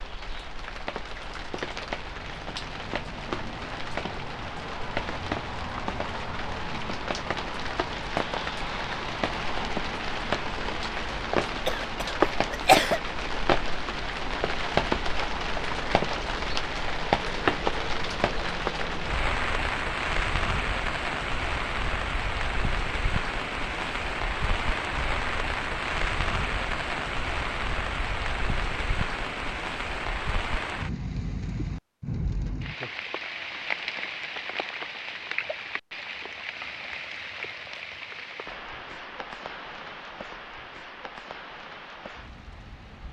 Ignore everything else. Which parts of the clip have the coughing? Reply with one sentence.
You can hear the coughing from 11.7 to 13.0 s.